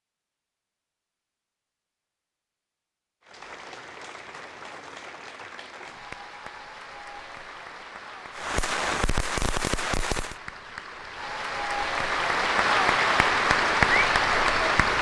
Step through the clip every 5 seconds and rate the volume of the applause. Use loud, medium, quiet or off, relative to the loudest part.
quiet, quiet, loud.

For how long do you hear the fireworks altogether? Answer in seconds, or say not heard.
2 s.